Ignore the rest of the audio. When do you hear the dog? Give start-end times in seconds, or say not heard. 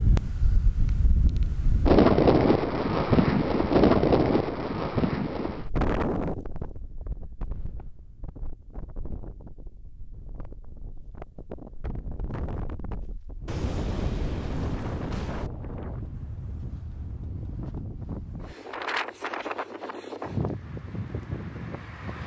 not heard.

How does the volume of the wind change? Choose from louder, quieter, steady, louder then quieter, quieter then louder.
quieter then louder.